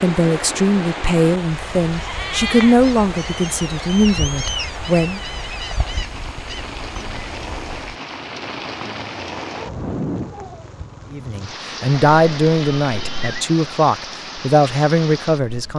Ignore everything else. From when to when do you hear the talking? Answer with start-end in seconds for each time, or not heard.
0.0-5.2, 11.1-15.7.